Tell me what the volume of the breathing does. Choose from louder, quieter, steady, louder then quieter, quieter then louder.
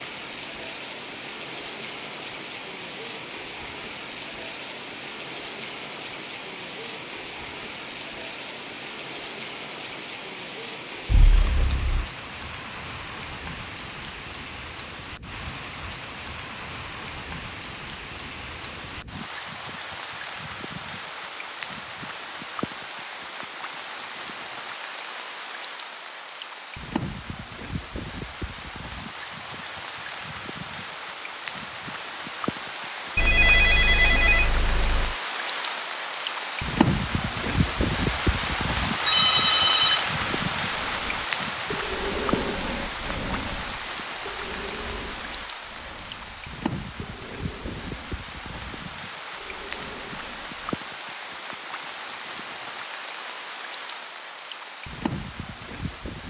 quieter.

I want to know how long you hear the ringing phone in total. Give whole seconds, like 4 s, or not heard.
4 s.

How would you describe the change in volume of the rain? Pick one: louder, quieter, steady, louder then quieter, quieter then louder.
louder then quieter.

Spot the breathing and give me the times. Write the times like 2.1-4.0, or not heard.
40.1-50.8.